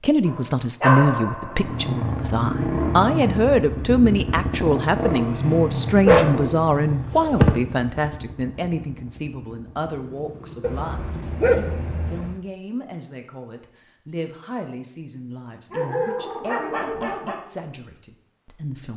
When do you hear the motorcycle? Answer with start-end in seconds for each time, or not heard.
1.4-12.2.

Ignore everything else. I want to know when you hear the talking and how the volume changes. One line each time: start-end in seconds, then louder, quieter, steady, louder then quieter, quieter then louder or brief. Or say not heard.
0.0-18.9 quieter.